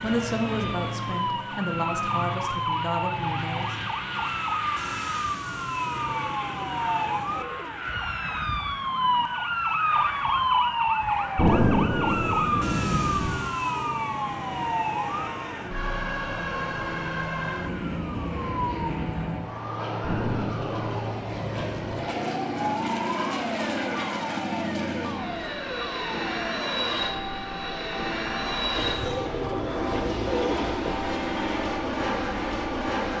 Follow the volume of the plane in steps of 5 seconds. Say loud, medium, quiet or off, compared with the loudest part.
medium, medium, medium, medium, loud, loud, loud.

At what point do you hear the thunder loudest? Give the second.
12 s.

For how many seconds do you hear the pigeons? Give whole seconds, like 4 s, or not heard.
5 s.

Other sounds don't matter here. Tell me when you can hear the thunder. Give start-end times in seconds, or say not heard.
11.3-13.3, 20.0-22.0.